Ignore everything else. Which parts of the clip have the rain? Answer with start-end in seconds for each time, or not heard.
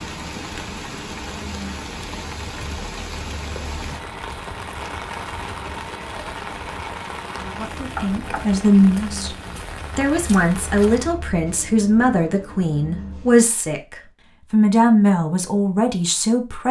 0.0-11.2.